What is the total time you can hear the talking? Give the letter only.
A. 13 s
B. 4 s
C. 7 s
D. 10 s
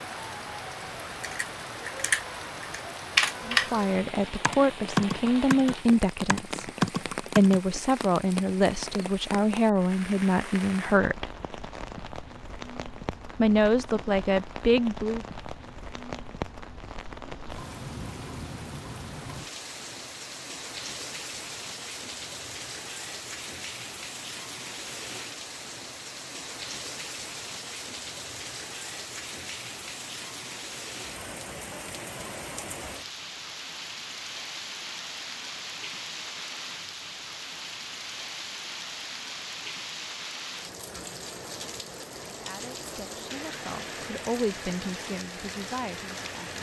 A.